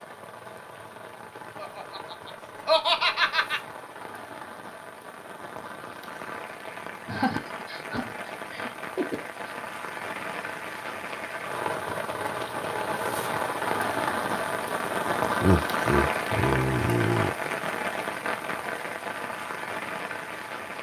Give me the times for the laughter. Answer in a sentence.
The laughter can be heard from 1.6 to 3.6 s, from 7.0 to 9.2 s and from 15.4 to 17.3 s.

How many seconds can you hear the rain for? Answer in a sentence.
You can hear the rain for 21 seconds altogether.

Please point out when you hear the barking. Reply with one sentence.
The barking can't be heard in this clip.